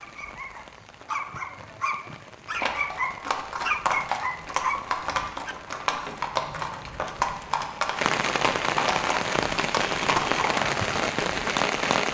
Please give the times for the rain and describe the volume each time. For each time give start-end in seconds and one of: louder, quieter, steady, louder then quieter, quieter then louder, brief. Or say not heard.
0.0-12.0 louder.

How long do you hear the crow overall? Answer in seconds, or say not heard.
not heard.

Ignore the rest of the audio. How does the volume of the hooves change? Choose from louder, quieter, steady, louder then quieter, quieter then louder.
steady.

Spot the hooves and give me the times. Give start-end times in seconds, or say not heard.
2.5-10.8.